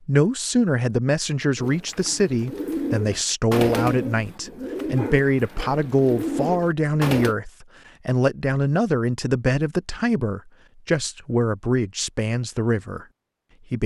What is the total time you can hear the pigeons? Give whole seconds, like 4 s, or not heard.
6 s.